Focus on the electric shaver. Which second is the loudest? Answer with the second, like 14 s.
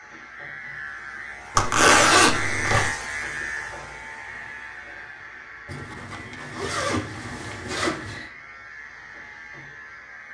3 s.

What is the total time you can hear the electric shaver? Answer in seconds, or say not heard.
10 s.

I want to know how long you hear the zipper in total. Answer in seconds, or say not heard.
4 s.